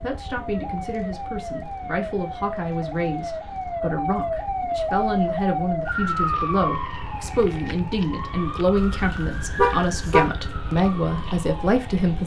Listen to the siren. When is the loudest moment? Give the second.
6 s.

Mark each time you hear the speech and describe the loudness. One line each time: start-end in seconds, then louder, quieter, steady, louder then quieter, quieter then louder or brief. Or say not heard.
0.0-12.2 louder.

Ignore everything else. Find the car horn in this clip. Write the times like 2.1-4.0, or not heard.
8.8-10.3.